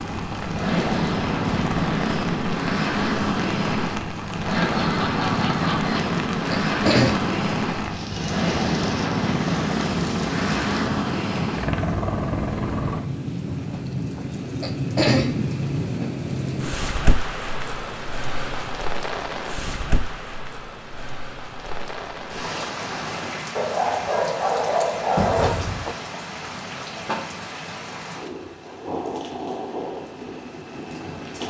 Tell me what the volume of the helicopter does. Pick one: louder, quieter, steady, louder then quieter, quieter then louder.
steady.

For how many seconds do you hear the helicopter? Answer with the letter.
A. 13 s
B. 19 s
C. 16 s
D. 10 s
A.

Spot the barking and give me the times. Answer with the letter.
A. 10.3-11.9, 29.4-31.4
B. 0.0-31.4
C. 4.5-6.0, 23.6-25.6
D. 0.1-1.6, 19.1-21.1
C.